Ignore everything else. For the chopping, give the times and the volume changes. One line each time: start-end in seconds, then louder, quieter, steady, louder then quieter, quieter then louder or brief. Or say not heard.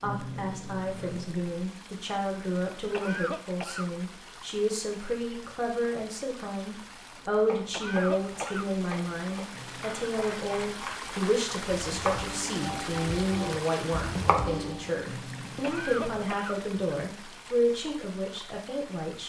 7.2-14.9 louder.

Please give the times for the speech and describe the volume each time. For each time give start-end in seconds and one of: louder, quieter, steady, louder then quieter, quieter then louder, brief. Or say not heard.
0.0-19.2 steady.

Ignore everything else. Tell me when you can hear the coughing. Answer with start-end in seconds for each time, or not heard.
2.9-3.9, 7.7-8.7, 15.6-16.6.